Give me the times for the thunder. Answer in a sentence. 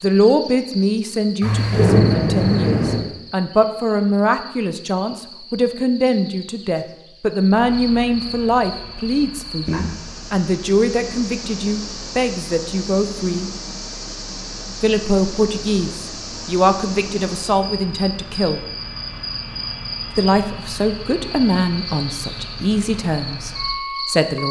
You can hear the thunder from 1.4 to 3.0 s.